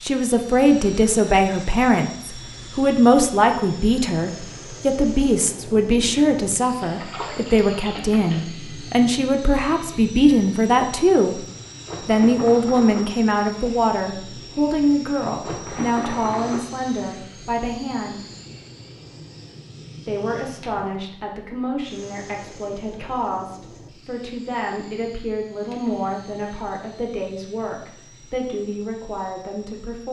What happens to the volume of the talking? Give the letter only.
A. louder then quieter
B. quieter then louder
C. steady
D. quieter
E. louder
D.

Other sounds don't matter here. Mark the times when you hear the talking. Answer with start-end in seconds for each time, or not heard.
0.0-11.4, 12.1-18.2, 20.1-30.0.